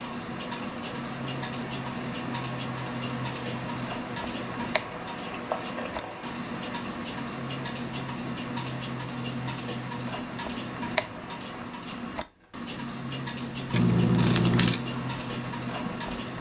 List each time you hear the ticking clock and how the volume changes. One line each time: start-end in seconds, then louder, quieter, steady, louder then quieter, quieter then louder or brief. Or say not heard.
0.0-16.3 steady.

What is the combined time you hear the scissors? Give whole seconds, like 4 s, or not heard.
2 s.